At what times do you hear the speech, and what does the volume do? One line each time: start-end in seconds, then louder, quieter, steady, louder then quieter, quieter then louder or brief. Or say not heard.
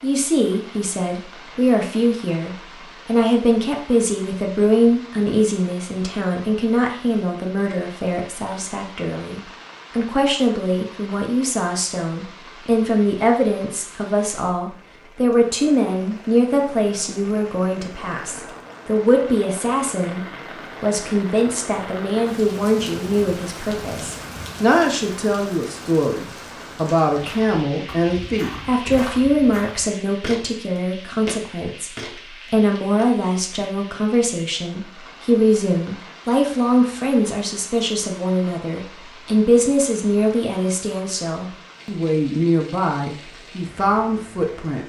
0.0-44.8 steady.